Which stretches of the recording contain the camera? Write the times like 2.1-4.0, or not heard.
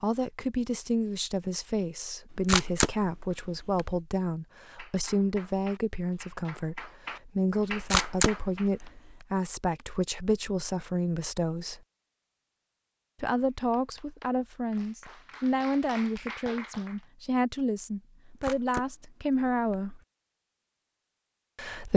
2.3-4.0, 7.7-9.2, 18.2-20.0.